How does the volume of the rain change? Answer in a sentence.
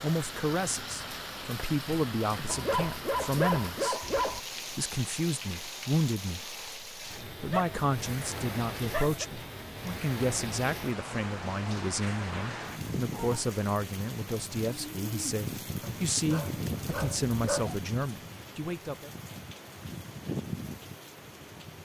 The volume of the rain stays about the same.